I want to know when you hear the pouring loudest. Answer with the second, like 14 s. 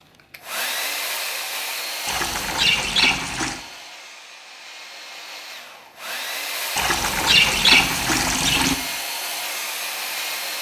8 s.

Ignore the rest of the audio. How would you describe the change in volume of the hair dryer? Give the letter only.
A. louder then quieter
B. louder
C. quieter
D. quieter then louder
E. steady
D.